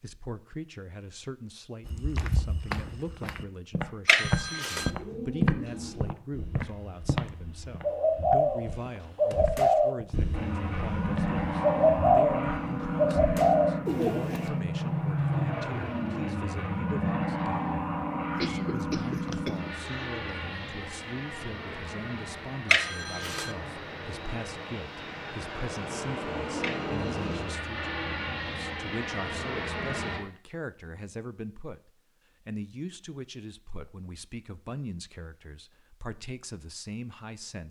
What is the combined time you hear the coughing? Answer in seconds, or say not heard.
2 s.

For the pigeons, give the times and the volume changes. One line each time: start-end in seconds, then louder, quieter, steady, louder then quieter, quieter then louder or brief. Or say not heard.
4.7-14.5 louder.